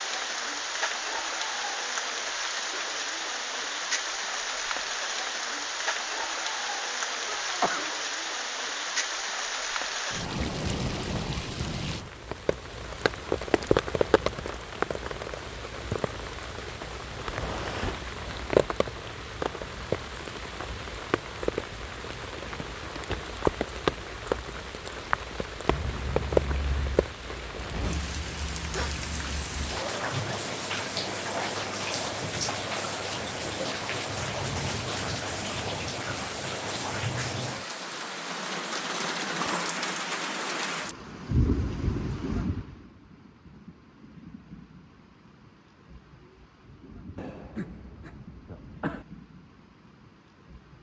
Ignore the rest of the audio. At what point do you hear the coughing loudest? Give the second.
8 s.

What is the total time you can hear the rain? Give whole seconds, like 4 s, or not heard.
51 s.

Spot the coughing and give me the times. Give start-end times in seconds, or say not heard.
7.2-8.0, 25.6-27.1, 47.1-49.0.